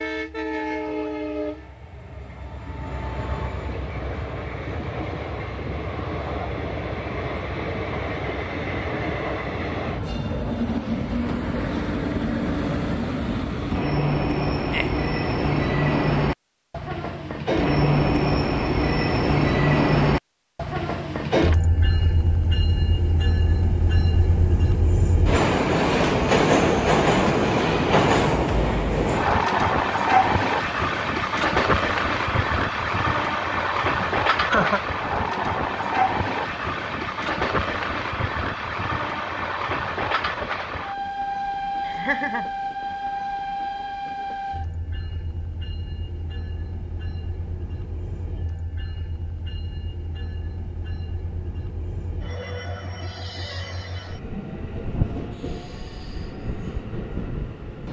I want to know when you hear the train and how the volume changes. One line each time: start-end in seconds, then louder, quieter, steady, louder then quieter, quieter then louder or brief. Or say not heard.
0.0-57.8 louder then quieter.